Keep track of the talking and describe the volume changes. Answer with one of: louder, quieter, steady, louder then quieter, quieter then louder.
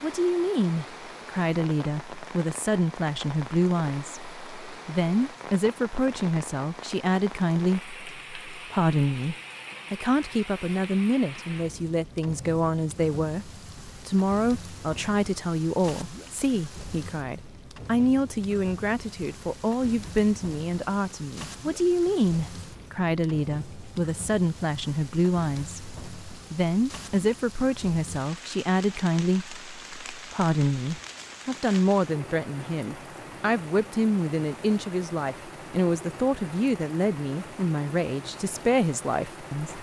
steady.